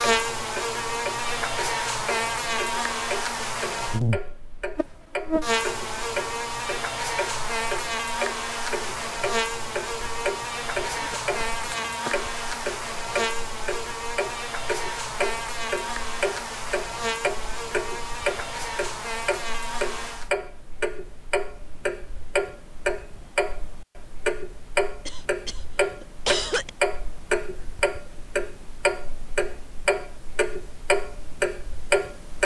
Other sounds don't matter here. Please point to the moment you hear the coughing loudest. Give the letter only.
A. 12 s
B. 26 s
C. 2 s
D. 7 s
B.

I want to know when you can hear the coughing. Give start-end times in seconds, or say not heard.
10.9-12.2, 25.0-26.7.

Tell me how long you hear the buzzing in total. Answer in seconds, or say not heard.
20 s.